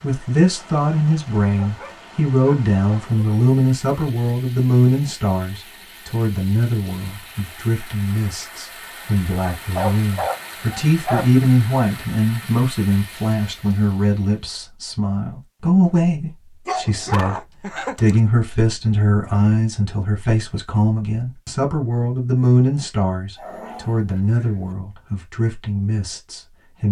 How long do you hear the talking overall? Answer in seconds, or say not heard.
27 s.